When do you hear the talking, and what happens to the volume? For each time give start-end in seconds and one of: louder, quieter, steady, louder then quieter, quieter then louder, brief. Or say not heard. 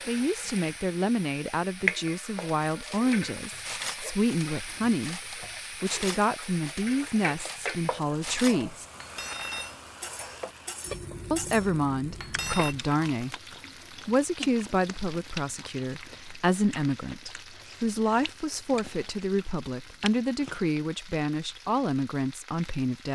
0.1-8.8 steady
11.3-13.3 brief
14.1-23.1 steady.